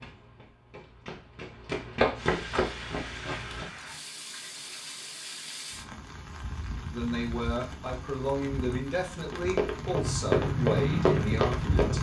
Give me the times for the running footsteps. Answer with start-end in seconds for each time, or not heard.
0.0-3.6, 9.3-11.9.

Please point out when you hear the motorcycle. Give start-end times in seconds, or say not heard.
9.8-11.9.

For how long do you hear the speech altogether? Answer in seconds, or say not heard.
5 s.